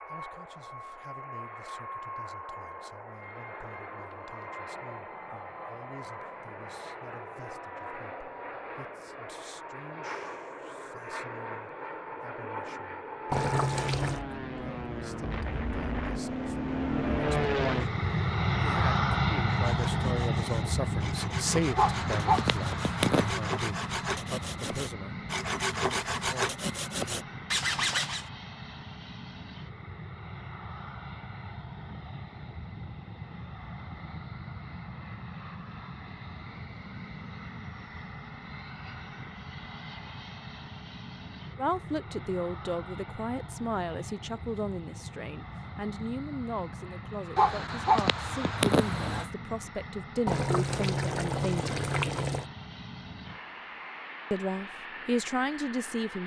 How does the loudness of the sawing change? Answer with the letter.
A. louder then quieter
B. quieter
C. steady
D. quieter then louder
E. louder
E.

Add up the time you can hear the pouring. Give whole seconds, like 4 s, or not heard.
3 s.